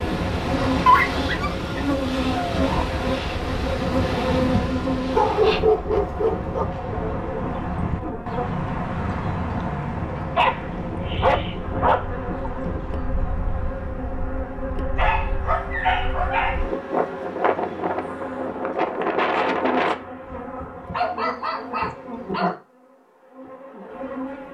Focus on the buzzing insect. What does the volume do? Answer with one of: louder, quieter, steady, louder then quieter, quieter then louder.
quieter.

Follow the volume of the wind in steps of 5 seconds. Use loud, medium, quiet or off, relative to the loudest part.
loud, medium, medium, loud, off.